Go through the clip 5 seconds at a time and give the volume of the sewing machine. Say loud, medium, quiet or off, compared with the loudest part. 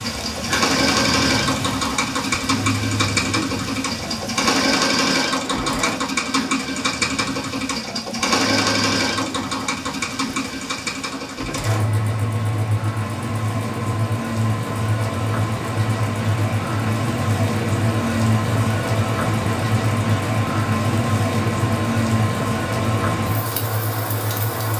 loud, loud, medium, medium, medium.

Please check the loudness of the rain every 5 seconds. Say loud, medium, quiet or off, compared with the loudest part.
medium, medium, medium, loud, loud.